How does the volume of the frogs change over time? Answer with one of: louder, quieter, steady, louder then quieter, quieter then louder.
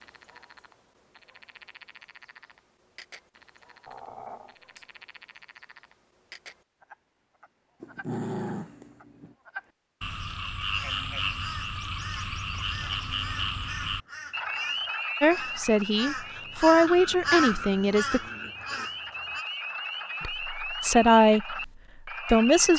louder.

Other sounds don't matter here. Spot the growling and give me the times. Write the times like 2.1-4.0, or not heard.
3.9-4.8, 7.8-9.3, 16.9-18.9.